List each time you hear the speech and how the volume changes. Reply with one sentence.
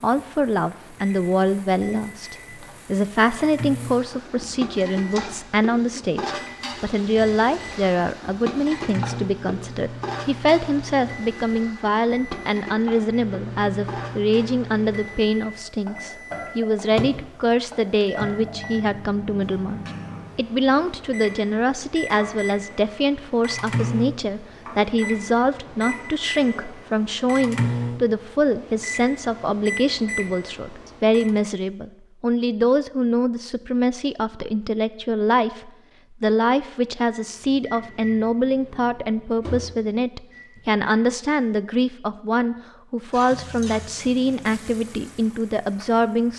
The speech can be heard from 0.0 to 46.3 s, at a steady volume.